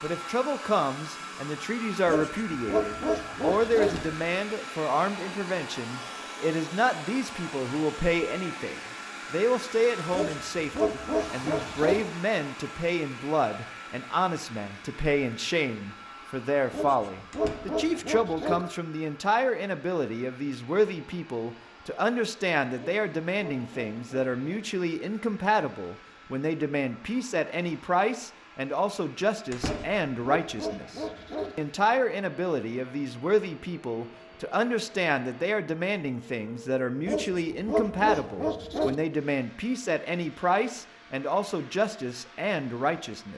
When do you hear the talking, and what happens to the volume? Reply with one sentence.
The talking can be heard from 0.0 to 43.3 s, at a steady volume.